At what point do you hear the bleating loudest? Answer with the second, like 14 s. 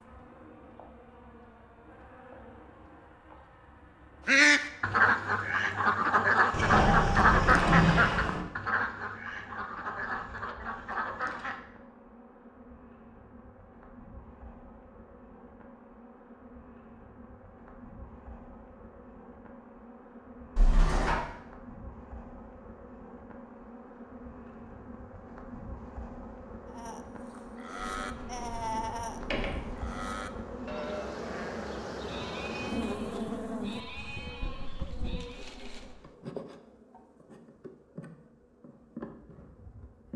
29 s.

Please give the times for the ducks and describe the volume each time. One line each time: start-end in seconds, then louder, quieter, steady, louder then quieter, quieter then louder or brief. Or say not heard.
4.2-11.6 quieter.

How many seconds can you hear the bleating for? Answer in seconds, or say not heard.
9 s.